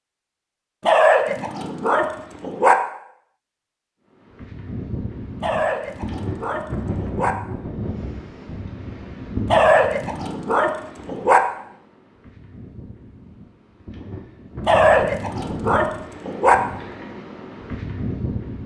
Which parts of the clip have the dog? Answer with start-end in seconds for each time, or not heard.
0.8-2.8, 5.4-7.3, 9.4-11.4, 14.7-16.6.